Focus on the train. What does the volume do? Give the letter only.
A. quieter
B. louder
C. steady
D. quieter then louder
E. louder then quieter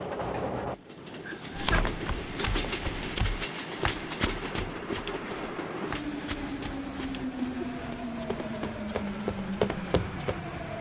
C.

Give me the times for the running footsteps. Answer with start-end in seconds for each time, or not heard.
1.6-10.3.